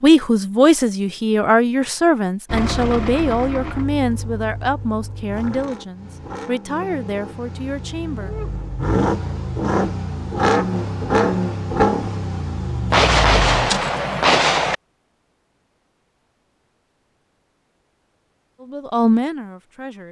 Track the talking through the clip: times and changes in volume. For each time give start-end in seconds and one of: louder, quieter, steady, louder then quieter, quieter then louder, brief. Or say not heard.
0.0-8.3 quieter
18.6-20.0 brief.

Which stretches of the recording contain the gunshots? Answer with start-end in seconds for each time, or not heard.
12.9-14.8.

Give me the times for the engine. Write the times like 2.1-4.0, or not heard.
2.5-13.9.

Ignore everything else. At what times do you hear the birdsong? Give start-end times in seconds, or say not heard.
not heard.